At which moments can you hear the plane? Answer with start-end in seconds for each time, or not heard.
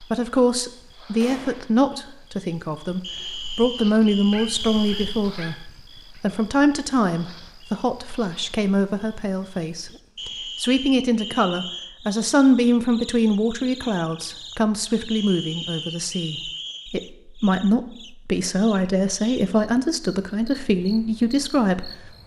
not heard.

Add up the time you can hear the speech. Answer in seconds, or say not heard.
22 s.